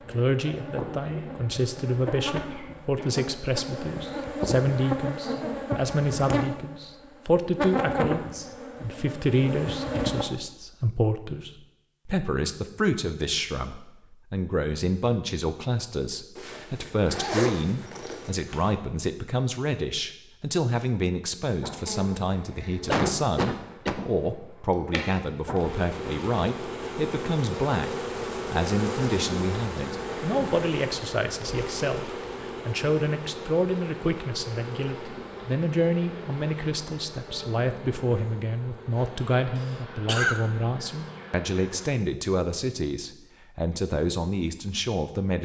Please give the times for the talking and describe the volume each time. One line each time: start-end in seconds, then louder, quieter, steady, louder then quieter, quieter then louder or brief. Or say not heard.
0.1-45.4 steady.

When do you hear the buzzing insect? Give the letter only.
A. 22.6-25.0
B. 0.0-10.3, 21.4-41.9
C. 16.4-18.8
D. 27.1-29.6
B.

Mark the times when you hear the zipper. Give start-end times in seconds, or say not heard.
16.4-18.8.